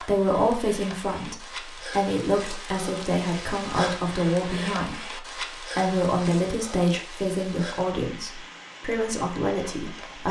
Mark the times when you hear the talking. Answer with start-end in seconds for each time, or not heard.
0.0-10.2.